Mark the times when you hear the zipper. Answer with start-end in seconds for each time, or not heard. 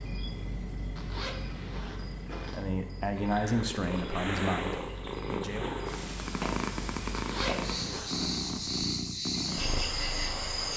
0.9-2.6, 7.2-8.2.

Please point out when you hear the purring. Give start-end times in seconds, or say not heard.
3.1-10.7.